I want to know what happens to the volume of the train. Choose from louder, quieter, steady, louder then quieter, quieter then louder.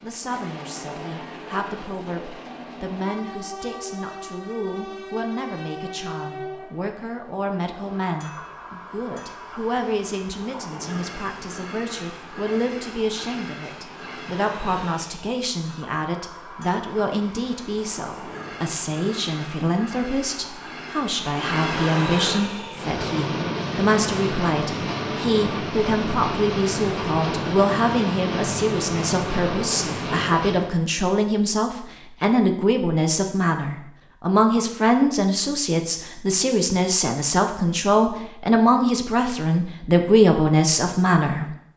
louder.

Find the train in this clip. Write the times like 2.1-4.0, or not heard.
0.0-30.8.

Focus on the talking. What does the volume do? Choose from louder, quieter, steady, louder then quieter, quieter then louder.
louder.